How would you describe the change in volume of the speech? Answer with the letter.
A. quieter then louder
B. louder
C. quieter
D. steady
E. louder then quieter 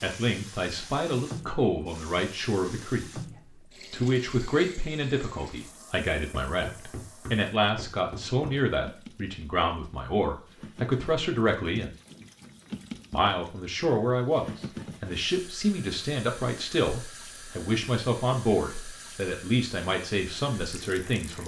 D.